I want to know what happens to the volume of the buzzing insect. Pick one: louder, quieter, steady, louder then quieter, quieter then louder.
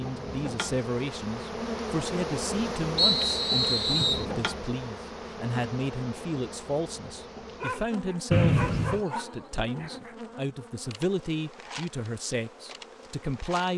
quieter.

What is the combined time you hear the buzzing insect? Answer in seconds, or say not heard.
14 s.